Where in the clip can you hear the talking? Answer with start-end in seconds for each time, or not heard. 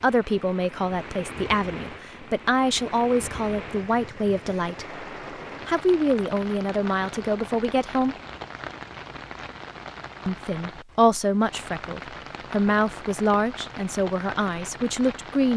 0.0-5.0, 5.7-8.2, 10.2-15.5.